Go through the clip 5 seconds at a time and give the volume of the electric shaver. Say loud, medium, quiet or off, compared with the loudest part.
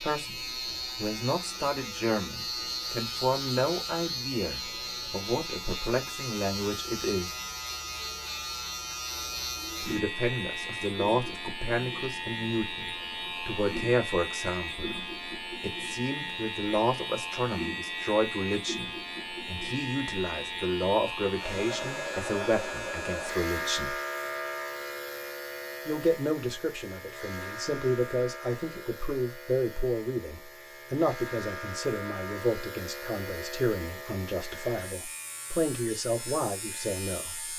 loud, loud, loud, loud, loud, medium, medium, medium.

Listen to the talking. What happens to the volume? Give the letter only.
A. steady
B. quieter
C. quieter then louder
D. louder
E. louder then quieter
A.